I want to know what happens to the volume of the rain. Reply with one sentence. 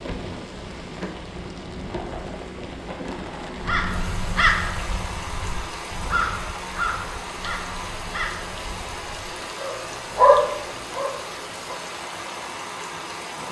The volume of the rain stays about the same.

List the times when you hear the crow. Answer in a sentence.
You can hear the crow from 3.6 to 9.4 s.